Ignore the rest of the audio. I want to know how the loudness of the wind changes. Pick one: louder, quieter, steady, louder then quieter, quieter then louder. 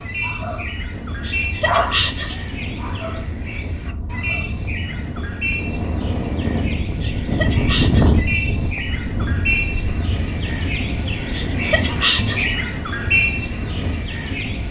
louder then quieter.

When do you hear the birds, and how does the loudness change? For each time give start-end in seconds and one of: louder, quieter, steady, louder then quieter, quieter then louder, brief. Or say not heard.
0.0-14.6 louder.